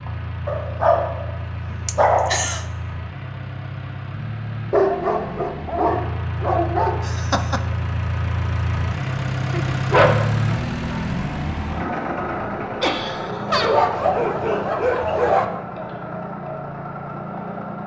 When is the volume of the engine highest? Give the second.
10 s.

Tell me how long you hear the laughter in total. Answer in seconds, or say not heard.
2 s.